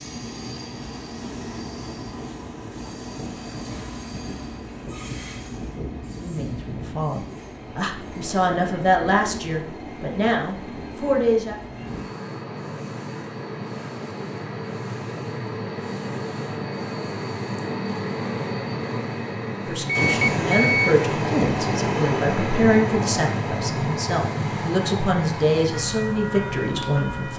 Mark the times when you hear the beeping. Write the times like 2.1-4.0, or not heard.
19.9-20.9.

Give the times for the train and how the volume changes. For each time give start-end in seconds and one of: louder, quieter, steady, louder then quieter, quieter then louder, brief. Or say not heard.
0.0-27.3 louder.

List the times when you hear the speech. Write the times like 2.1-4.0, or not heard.
6.2-11.6, 19.6-27.3.